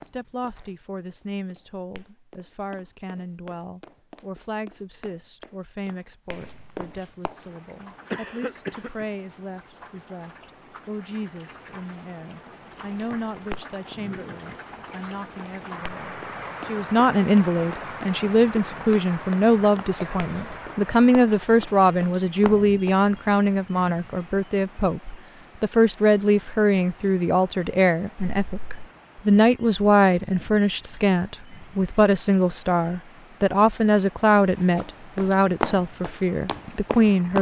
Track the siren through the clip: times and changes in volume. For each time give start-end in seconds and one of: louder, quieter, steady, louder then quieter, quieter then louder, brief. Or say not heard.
not heard.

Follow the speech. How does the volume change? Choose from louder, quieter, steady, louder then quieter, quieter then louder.
louder.